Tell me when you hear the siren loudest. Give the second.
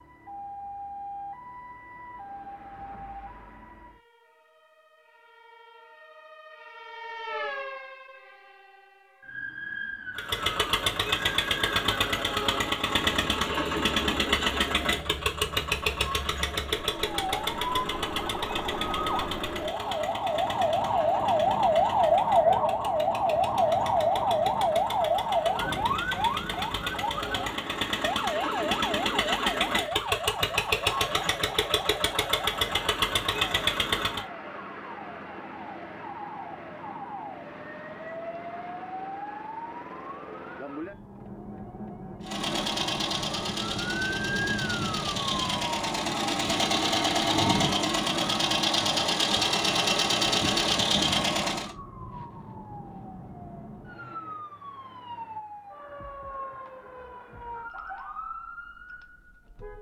22 s.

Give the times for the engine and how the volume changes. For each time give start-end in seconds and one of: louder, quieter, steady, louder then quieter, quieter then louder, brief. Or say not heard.
10.2-34.2 quieter then louder
42.2-51.8 louder.